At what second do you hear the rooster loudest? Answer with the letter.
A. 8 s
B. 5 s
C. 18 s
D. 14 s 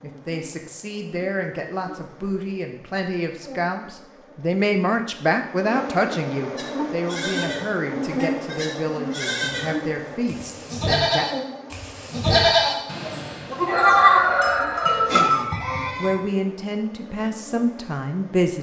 D.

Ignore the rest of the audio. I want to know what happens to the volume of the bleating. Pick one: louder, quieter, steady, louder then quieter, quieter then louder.
louder.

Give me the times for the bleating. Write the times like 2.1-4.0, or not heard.
6.5-16.1.